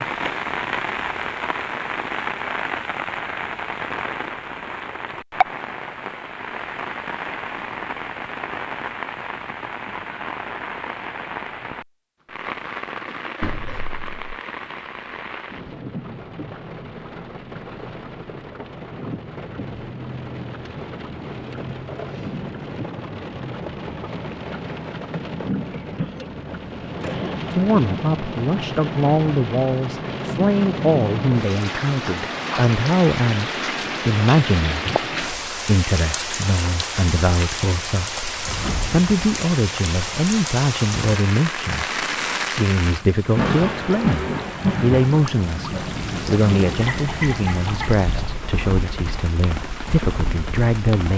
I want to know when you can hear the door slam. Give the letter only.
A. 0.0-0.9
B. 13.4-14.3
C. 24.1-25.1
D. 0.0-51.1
B.